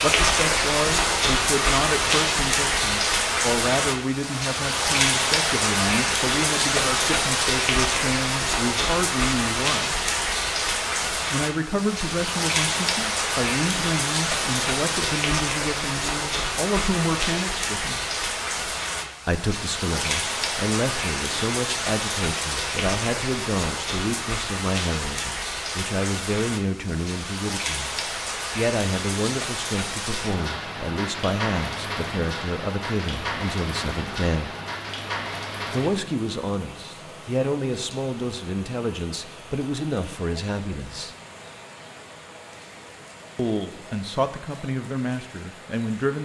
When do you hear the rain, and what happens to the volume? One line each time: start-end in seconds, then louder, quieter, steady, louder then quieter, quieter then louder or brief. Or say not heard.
0.0-46.2 quieter.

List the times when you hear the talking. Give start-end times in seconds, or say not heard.
0.0-10.0, 11.3-18.0, 19.2-27.9, 28.6-34.5, 35.7-41.1, 43.4-46.2.